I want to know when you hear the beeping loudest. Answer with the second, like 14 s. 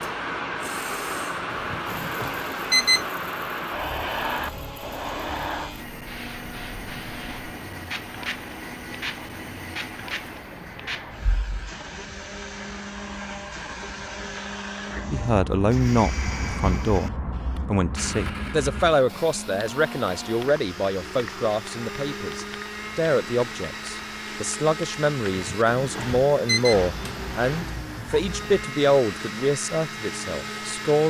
3 s.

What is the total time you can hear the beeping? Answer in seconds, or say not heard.
3 s.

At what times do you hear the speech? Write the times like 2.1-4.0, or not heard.
15.1-31.0.